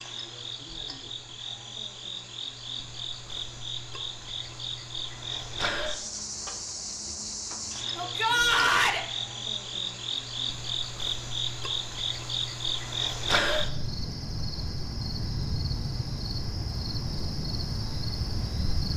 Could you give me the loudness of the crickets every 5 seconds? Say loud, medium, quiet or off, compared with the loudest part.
medium, loud, loud, loud.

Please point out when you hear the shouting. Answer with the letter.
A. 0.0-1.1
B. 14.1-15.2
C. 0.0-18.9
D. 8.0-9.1
D.